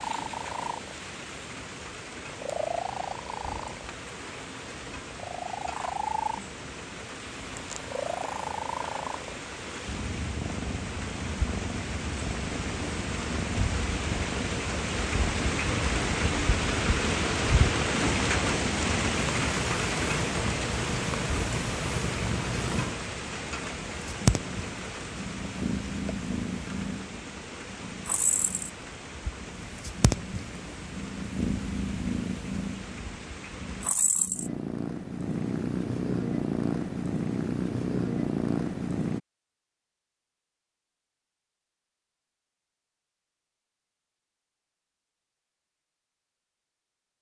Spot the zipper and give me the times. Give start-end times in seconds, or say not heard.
not heard.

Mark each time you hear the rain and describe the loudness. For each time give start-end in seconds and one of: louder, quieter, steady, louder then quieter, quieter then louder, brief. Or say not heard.
0.0-34.0 louder then quieter.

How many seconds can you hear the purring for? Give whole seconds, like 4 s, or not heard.
39 s.